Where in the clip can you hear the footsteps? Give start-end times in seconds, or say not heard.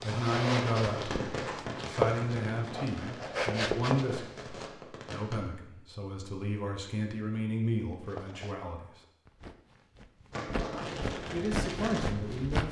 0.0-4.7, 7.9-12.6.